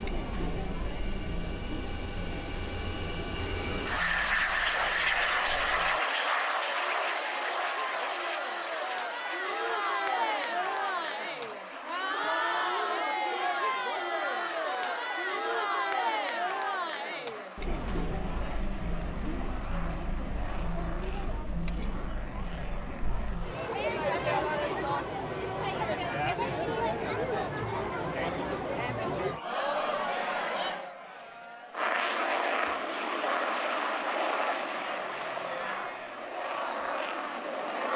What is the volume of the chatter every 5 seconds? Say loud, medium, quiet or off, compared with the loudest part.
medium, medium, loud, loud, loud, loud, medium, medium.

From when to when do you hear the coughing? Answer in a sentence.
The coughing can't be heard in this clip.